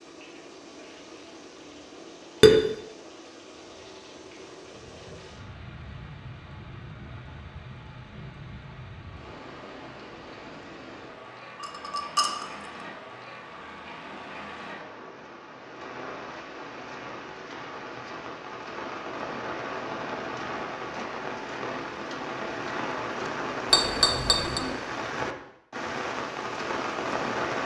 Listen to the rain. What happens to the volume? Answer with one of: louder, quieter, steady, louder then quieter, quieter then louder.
louder.